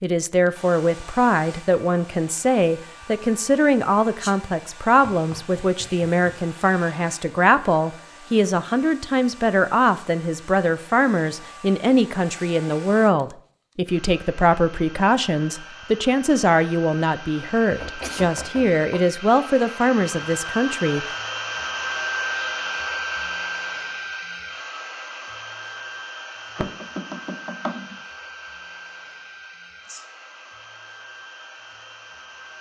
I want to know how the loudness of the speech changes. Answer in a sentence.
The loudness of the speech stays about the same.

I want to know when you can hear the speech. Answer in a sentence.
You can hear the speech from 0.0 to 21.1 s.